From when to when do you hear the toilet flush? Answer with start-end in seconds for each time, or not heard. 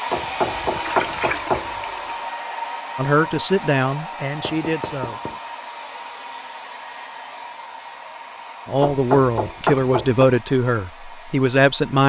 0.7-2.2.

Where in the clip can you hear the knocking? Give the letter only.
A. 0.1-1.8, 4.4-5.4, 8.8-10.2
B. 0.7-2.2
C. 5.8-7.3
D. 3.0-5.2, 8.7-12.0
A.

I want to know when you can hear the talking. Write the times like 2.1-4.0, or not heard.
3.0-5.2, 8.7-12.0.